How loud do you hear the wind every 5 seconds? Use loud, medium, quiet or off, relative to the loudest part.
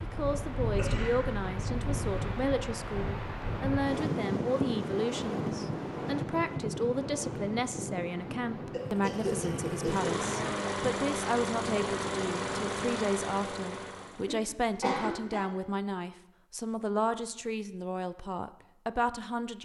loud, loud, medium, off.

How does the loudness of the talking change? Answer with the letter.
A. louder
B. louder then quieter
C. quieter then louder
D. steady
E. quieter
D.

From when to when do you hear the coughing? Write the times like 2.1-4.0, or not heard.
0.8-1.4, 8.7-10.3, 14.2-15.5.